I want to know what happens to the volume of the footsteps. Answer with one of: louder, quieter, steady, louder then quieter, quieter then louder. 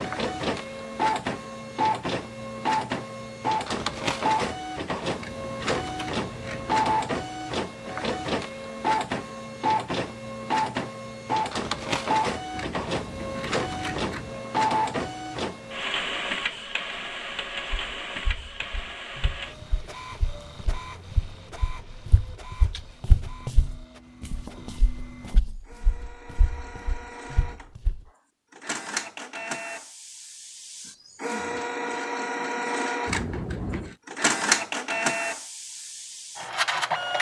louder then quieter.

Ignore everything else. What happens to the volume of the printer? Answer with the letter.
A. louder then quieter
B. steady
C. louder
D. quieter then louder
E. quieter
D.